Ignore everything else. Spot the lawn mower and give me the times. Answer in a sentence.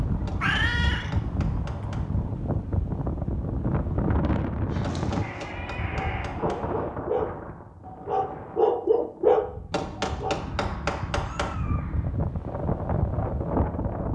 You can't hear the lawn mower here.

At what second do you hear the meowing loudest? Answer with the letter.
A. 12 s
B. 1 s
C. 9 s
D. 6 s
B.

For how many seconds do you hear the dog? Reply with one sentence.
You can hear the dog for 6 seconds altogether.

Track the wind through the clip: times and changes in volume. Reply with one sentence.
You can hear the wind from 0.0 to 14.1 s, getting quieter then louder.